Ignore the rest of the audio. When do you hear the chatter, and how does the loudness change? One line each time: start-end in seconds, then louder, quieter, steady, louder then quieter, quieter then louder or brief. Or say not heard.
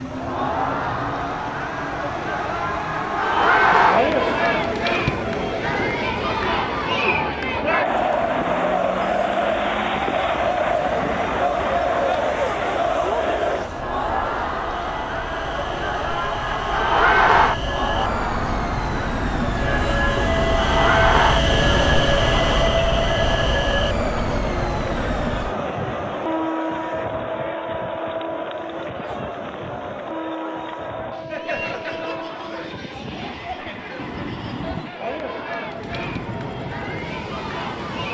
0.0-38.1 quieter.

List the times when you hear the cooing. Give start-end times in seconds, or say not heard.
not heard.